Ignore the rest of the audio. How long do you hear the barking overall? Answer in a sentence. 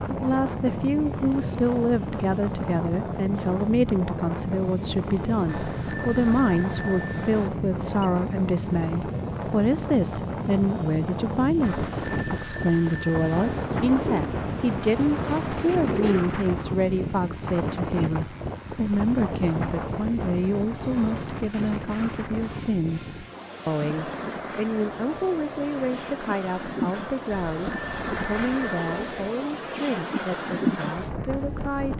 You can't hear the barking here.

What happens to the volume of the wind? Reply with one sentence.
The loudness of the wind stays about the same.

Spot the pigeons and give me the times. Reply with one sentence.
You can hear the pigeons from 13.4 to 16.2 s.